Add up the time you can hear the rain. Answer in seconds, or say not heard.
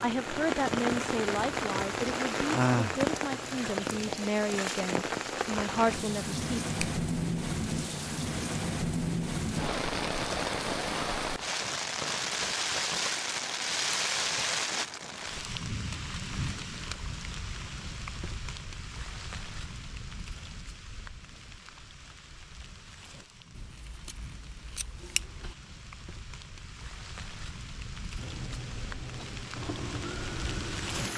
31 s.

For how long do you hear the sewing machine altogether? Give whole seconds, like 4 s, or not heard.
7 s.